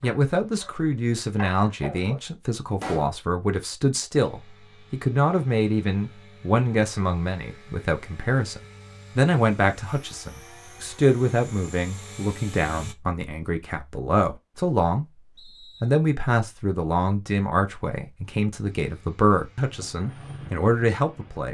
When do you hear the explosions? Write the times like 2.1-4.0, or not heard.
2.8-3.2.